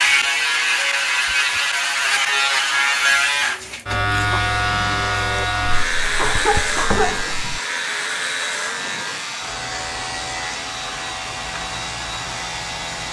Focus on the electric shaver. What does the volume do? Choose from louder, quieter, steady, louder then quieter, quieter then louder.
quieter.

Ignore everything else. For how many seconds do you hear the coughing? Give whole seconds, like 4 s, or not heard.
2 s.